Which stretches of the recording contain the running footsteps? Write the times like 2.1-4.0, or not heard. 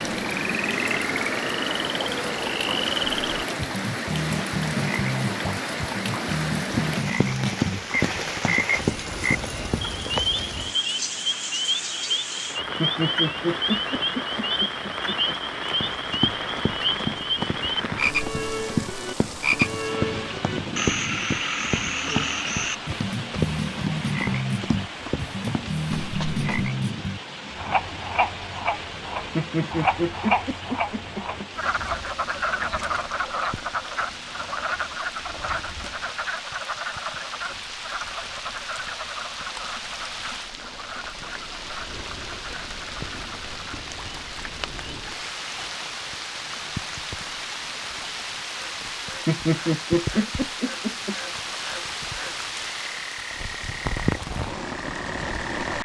6.7-10.2, 15.7-26.4.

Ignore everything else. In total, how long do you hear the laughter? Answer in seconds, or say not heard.
7 s.